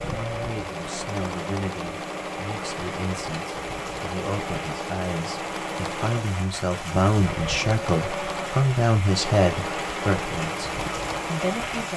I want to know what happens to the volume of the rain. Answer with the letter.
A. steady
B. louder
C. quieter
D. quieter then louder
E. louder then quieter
B.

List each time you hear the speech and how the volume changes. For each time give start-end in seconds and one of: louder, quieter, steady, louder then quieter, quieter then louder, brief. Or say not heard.
0.0-11.9 louder.